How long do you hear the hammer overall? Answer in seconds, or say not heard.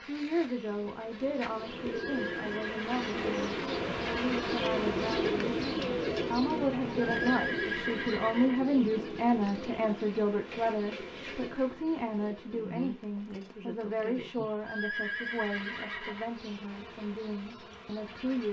not heard.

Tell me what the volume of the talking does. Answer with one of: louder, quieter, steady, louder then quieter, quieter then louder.
louder then quieter.